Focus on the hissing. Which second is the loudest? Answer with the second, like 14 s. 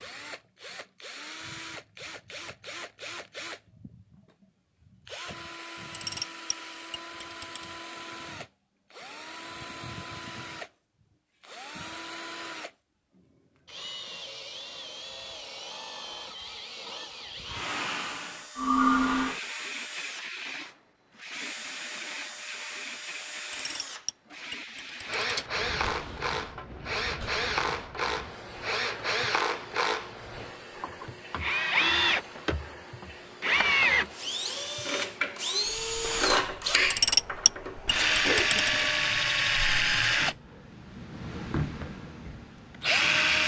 19 s.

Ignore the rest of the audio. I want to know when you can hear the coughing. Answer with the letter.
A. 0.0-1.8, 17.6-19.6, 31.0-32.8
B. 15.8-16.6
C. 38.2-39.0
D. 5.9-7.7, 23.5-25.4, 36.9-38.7
C.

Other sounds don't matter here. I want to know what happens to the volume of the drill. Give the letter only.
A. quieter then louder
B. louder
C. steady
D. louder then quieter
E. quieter
B.